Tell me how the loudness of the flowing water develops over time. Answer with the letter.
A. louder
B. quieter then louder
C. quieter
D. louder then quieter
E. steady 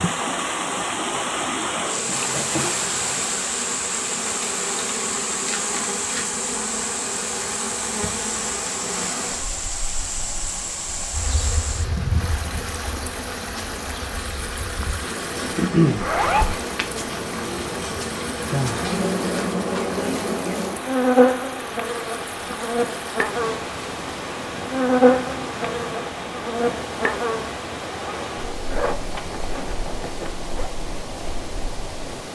C.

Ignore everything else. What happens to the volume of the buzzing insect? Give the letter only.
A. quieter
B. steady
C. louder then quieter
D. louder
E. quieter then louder
D.